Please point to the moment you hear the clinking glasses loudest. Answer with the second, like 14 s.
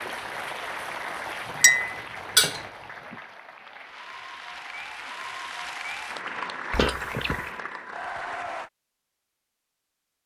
2 s.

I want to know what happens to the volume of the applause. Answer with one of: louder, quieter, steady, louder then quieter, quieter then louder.
quieter then louder.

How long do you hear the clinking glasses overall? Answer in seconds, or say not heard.
2 s.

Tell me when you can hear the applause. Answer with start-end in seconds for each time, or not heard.
0.0-8.7.